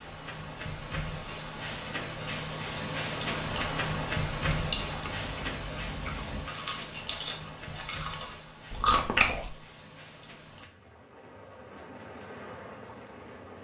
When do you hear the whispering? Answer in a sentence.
You can't hear the whispering here.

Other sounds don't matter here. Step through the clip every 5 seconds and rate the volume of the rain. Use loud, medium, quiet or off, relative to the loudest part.
loud, medium, quiet.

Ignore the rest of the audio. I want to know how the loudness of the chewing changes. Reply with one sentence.
The volume of the chewing goes up.